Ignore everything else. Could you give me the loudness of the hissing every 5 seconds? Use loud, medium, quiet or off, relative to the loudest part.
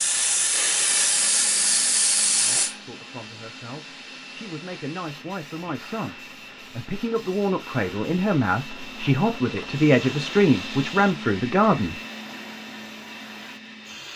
loud, quiet, quiet.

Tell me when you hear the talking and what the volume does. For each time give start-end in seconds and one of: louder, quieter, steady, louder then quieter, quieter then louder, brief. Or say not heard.
2.4-12.0 louder.